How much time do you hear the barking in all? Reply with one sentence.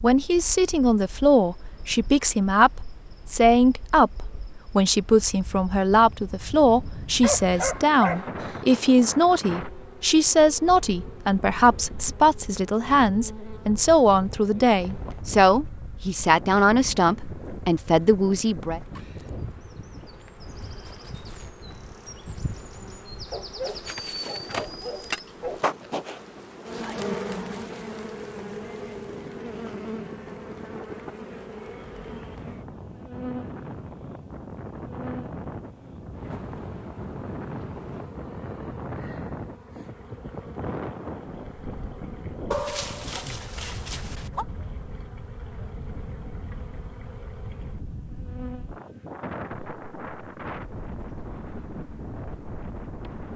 The barking can be heard for 6 seconds in total.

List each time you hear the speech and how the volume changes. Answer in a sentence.
You can hear the speech from 0.0 to 18.8 s, at a steady volume.